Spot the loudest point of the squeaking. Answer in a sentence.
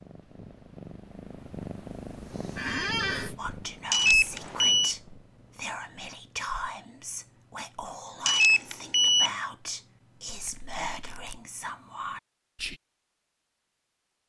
The volume of the squeaking peaks at 3 seconds.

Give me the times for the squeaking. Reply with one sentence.
The squeaking can be heard from 2.5 to 3.3 s and from 10.2 to 11.4 s.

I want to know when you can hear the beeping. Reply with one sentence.
You can hear the beeping from 3.9 to 5.0 s and from 8.2 to 9.3 s.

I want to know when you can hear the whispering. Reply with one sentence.
You can hear the whispering from 3.4 to 12.8 s.